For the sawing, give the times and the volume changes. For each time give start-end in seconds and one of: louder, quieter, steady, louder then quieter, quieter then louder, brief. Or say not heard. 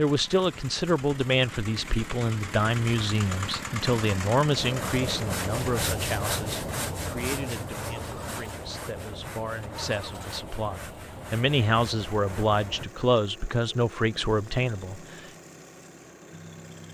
4.5-12.8 quieter.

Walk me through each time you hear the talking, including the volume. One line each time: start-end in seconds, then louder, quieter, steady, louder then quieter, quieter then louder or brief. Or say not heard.
0.0-15.2 quieter then louder.